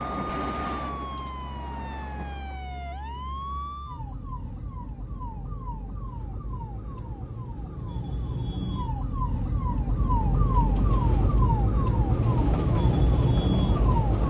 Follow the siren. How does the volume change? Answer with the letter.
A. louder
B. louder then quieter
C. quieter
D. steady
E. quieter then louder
A.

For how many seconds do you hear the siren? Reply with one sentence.
You can hear the siren for 14 seconds altogether.